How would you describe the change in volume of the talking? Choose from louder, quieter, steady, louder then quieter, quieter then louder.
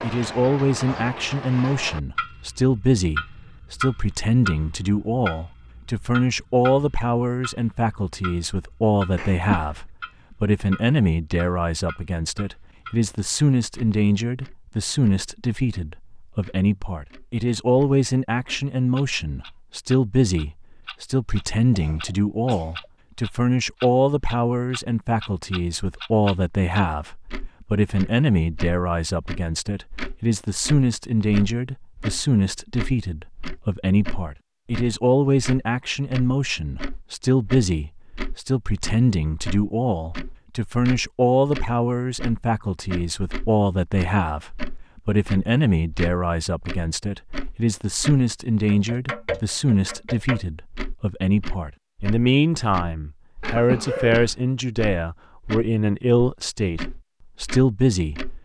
steady.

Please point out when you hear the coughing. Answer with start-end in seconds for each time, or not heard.
9.2-9.9, 21.3-22.9, 53.4-54.4.